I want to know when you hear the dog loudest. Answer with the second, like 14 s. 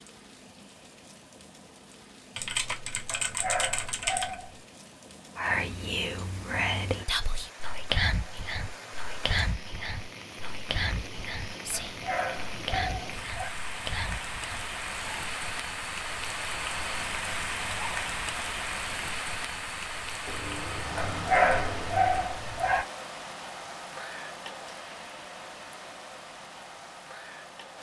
21 s.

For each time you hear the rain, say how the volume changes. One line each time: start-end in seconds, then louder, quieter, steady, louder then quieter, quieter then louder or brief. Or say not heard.
0.0-27.7 louder then quieter.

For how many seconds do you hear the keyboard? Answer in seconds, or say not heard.
4 s.